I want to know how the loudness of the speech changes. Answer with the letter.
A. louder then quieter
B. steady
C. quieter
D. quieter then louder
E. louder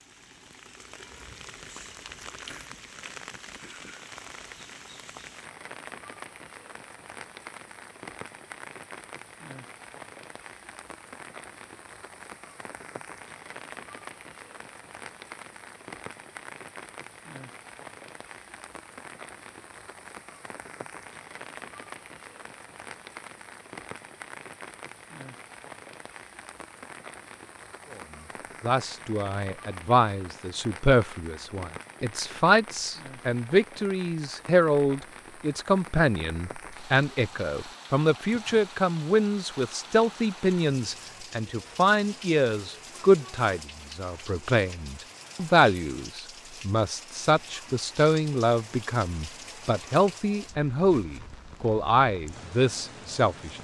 B.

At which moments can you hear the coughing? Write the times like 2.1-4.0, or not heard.
not heard.